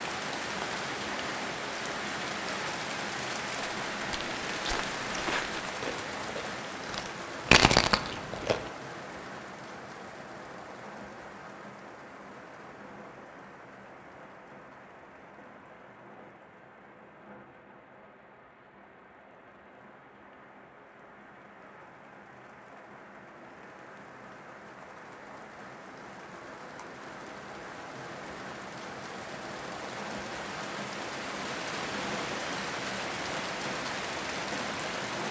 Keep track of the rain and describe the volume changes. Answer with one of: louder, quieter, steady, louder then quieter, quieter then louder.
quieter then louder.